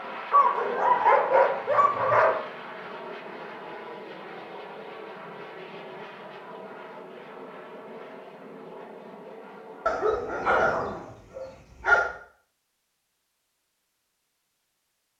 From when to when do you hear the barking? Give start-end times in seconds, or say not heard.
0.3-2.3, 9.8-12.1.